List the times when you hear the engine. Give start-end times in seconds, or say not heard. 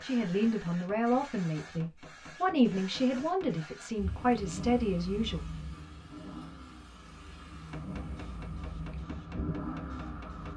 4.0-10.5.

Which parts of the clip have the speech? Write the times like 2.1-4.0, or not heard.
0.0-5.5.